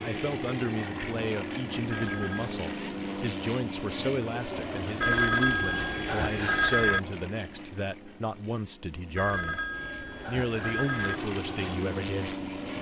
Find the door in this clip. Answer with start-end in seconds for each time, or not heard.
not heard.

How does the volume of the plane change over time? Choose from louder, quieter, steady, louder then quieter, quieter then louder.
quieter then louder.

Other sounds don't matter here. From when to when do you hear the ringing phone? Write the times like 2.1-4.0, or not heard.
1.9-2.5, 5.0-7.0, 9.2-11.2.